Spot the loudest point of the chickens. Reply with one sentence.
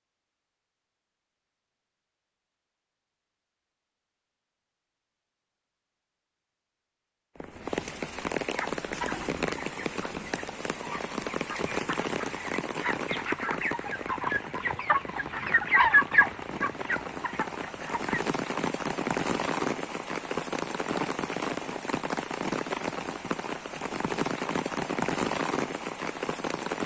The volume of the chickens peaks at 16 seconds.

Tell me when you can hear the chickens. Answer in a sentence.
The chickens can be heard from 8.6 to 18.2 s.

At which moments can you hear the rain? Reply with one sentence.
You can hear the rain from 7.3 to 26.8 s.